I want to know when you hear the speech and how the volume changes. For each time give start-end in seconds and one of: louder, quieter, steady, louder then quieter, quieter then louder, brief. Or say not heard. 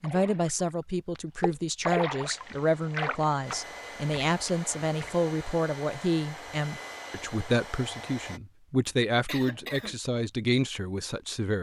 0.0-11.5 steady.